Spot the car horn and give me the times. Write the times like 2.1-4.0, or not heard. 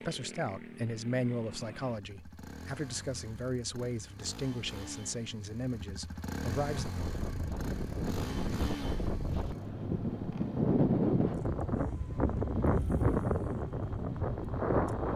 not heard.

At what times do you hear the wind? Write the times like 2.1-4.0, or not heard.
6.7-15.1.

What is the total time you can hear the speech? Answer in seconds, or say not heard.
7 s.